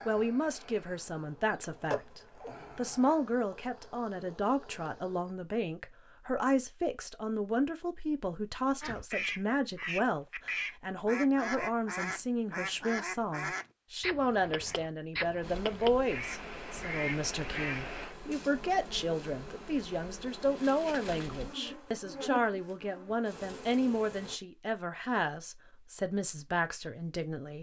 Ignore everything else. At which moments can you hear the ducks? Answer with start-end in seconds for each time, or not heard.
8.8-18.1.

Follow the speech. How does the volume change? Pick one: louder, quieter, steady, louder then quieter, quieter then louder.
steady.